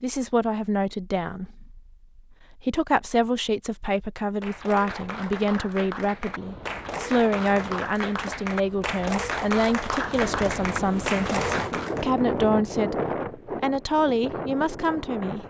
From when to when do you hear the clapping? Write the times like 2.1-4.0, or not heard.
4.2-12.2.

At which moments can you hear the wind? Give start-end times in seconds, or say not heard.
6.2-15.4.